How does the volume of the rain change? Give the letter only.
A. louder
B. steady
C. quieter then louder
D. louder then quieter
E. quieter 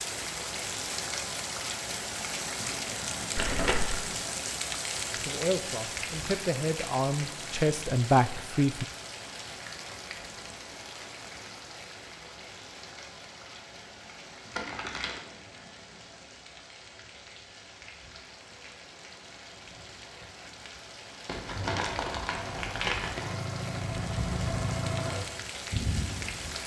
C.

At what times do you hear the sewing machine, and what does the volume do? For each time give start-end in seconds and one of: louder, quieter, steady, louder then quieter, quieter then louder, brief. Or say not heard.
21.6-26.6 louder.